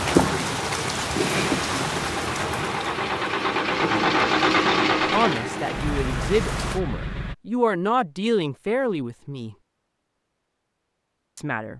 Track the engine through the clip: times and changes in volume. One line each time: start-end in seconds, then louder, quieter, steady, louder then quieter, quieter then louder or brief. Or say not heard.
0.0-7.3 louder then quieter.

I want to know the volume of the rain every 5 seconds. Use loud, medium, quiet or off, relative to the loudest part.
loud, medium, off.